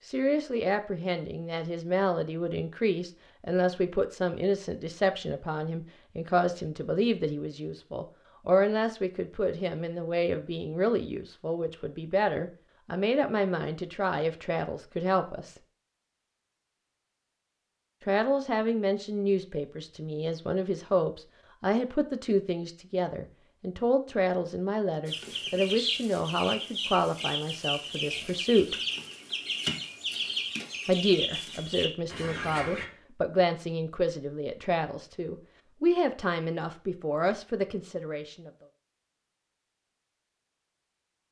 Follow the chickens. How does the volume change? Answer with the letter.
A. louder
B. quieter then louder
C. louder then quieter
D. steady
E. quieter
D.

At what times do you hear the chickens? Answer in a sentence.
The chickens can be heard from 25.1 to 32.9 s.